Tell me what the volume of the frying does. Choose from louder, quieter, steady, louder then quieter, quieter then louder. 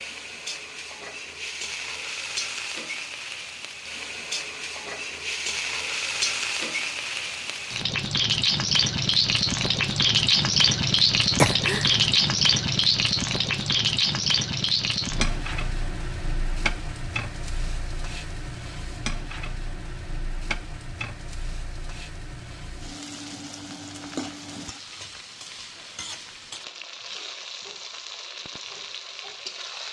louder then quieter.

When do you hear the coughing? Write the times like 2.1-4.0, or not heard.
11.3-12.1.